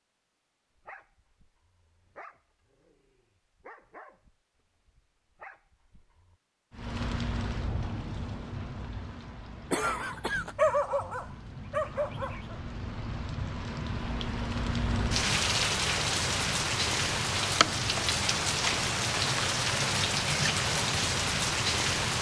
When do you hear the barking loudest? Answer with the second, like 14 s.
11 s.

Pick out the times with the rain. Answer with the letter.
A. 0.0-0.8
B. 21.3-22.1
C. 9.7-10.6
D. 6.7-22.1
D.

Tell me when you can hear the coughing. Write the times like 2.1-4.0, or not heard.
9.7-10.6.